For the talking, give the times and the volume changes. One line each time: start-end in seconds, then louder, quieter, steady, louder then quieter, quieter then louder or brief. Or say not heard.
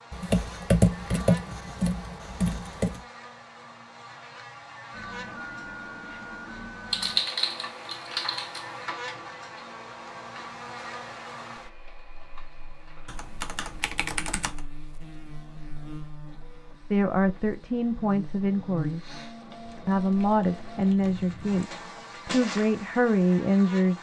16.9-19.0 brief
19.9-23.9 quieter then louder.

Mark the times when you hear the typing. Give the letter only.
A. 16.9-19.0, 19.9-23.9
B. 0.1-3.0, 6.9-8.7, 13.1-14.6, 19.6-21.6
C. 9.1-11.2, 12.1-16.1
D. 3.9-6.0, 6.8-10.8
B.